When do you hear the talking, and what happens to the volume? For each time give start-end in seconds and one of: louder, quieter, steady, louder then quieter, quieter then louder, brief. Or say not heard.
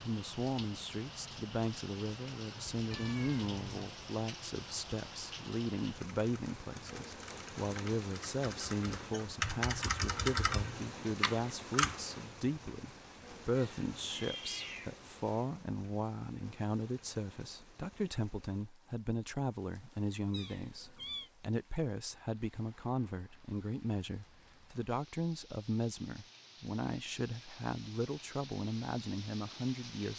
0.0-30.1 steady.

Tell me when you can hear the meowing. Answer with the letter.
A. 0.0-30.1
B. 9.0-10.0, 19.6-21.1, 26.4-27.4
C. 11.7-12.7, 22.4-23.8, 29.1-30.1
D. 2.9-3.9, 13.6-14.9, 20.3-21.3
D.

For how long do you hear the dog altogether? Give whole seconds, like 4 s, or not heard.
not heard.